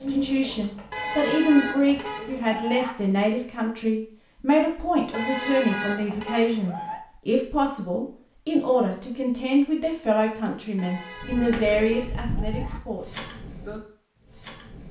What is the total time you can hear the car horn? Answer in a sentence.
You can hear the car horn for 6 seconds altogether.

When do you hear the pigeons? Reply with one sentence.
You can hear the pigeons from 0.0 to 2.4 s and from 11.2 to 14.8 s.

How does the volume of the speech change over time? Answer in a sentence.
The volume of the speech stays about the same.